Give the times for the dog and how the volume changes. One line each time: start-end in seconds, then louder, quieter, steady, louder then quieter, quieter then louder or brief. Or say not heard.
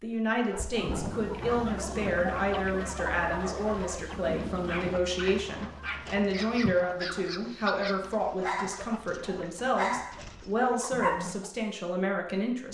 0.4-11.3 louder.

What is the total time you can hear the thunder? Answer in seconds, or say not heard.
4 s.